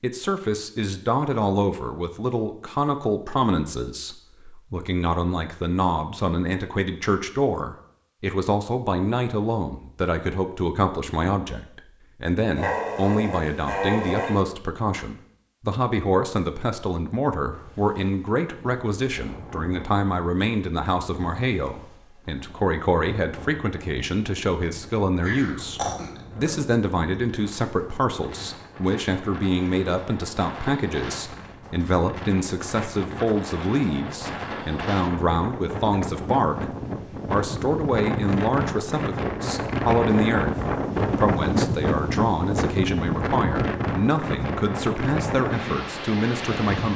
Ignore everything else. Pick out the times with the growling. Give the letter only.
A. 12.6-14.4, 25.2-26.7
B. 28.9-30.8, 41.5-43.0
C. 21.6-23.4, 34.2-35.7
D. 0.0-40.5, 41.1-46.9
A.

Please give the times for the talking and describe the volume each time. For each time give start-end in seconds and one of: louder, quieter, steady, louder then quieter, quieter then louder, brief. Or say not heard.
0.0-40.5 steady
41.1-46.9 steady.